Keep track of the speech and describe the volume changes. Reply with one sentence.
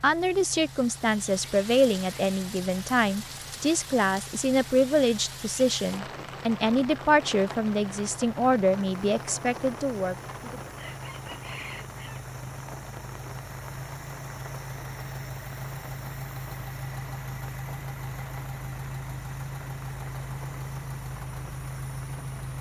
The loudness of the speech stays about the same.